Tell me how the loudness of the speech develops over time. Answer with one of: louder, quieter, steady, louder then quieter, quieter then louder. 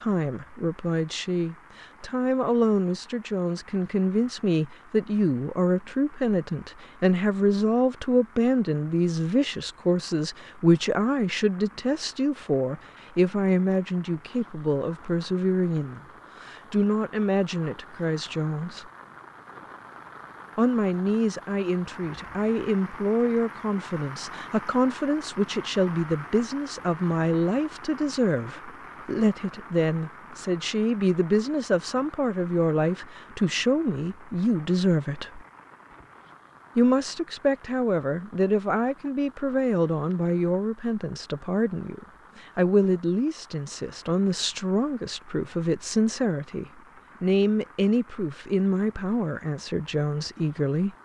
steady.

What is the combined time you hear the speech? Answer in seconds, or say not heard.
48 s.